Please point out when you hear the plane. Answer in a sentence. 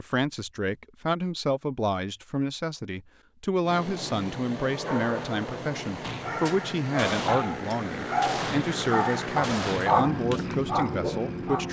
The plane can be heard from 3.6 to 11.6 s.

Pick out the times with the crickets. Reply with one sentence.
You can't hear the crickets here.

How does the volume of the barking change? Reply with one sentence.
The loudness of the barking goes up.